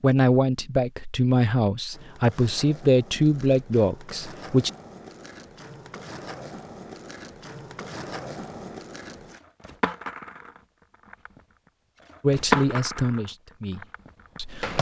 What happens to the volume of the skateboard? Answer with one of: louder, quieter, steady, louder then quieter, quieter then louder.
louder.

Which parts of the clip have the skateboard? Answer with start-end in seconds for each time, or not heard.
1.9-14.7.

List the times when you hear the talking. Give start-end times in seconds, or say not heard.
0.0-4.7, 12.2-14.7.